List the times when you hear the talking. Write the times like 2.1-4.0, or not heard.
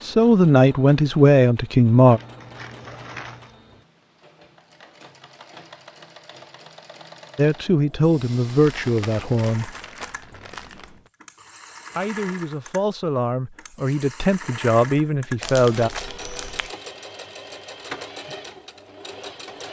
0.0-2.2, 7.3-9.8, 11.9-15.9.